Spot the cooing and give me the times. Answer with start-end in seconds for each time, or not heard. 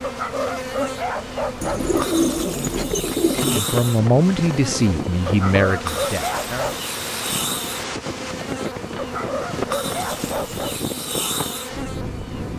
1.6-3.6.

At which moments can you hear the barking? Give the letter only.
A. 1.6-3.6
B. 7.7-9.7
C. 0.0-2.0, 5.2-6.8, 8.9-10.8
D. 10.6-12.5
C.